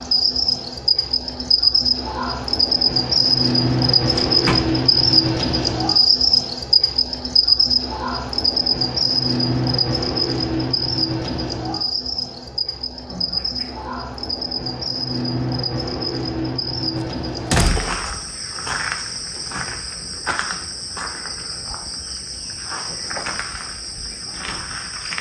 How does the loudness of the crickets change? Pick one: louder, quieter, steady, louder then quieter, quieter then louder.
quieter.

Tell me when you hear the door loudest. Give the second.
18 s.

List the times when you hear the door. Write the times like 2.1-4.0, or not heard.
4.2-4.8, 13.1-13.9, 16.9-18.1.